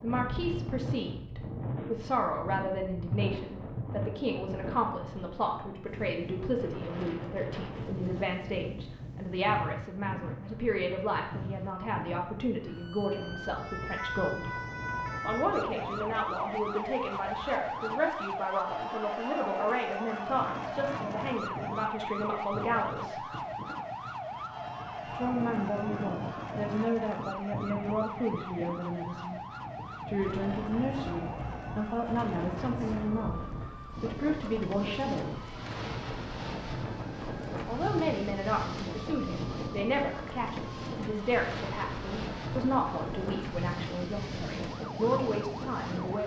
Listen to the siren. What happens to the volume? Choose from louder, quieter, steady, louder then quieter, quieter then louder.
quieter.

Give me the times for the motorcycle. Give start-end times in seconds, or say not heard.
not heard.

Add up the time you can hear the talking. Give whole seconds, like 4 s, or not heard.
41 s.